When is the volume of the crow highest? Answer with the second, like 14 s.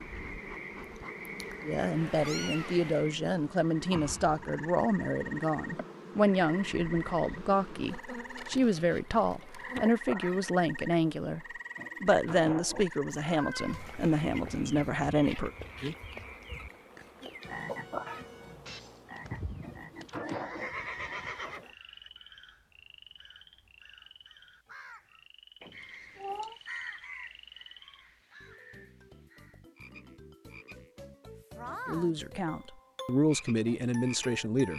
27 s.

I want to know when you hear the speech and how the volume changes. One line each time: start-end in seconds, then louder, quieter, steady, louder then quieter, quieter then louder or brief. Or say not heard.
1.6-15.5 steady
31.9-34.7 brief.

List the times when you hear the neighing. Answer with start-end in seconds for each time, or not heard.
19.2-21.6.